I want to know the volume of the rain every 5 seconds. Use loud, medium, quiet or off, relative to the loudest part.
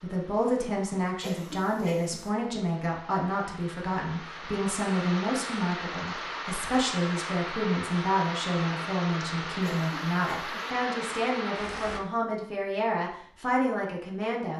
medium, loud, loud.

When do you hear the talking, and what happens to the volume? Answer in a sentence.
You can hear the talking from 0.0 to 14.5 s, at a steady volume.